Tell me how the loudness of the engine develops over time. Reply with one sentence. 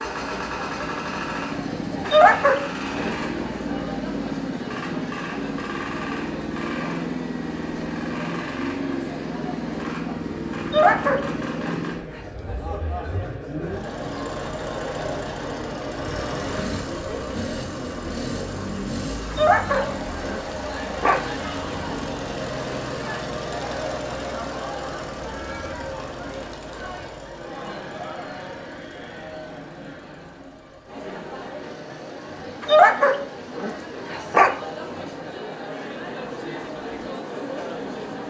The volume of the engine goes down.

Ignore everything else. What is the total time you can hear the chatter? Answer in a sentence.
The chatter can be heard for 38 seconds in total.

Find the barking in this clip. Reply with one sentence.
You can hear the barking from 2.0 to 3.1 s, from 10.7 to 12.2 s, from 19.3 to 21.2 s and from 32.6 to 34.5 s.